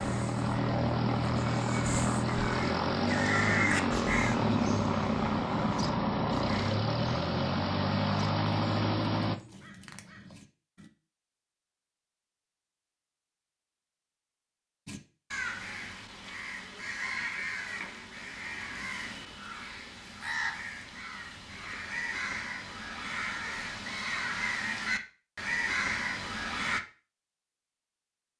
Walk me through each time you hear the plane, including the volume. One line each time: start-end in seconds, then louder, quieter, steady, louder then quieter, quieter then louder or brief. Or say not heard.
0.0-9.4 steady.